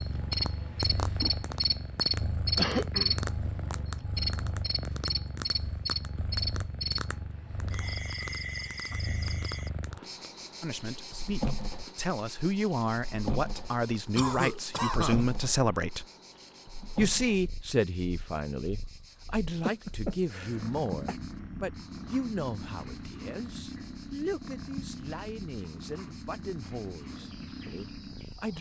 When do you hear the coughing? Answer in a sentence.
The coughing can be heard from 2.5 to 3.6 s, from 14.2 to 15.2 s and from 19.6 to 21.1 s.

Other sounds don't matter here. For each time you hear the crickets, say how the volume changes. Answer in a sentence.
You can hear the crickets from 0.0 to 28.5 s, getting quieter.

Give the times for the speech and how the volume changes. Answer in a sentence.
You can hear the speech from 10.6 to 16.1 s, getting louder; and from 16.9 to 28.5 s, getting quieter.